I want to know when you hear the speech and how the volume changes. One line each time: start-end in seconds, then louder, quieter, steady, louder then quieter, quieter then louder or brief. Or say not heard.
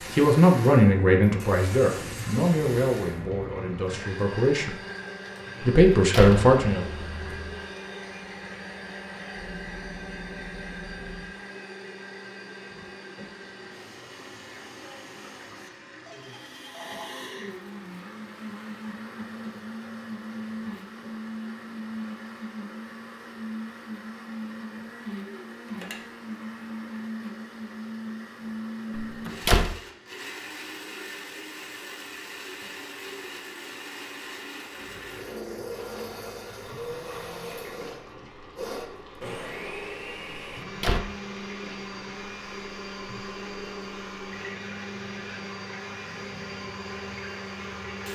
0.1-4.8 quieter
5.7-6.8 brief.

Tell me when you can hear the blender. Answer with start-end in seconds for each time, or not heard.
0.0-48.1.